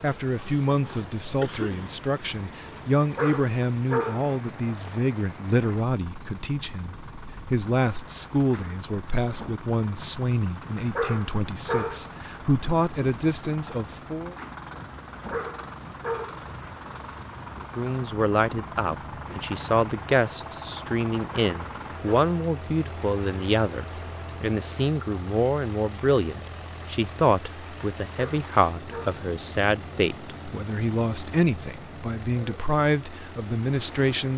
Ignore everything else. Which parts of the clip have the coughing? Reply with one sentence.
The coughing can be heard from 1.4 to 1.9 s.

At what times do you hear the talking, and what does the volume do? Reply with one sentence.
You can hear the talking from 0.0 to 14.3 s, at a steady volume; and from 17.8 to 34.3 s, at a steady volume.